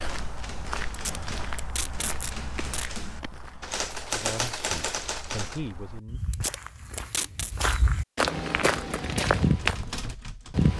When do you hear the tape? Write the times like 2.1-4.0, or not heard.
0.9-2.9, 6.3-7.5.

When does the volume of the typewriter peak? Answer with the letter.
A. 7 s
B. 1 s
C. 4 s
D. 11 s
C.